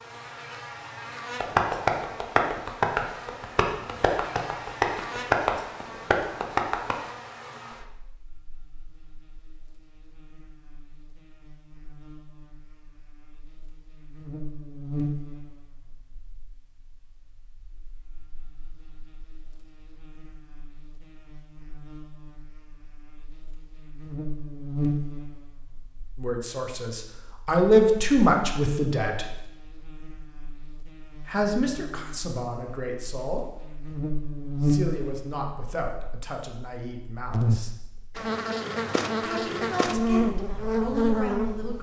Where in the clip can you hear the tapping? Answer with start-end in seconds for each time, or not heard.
1.4-7.0.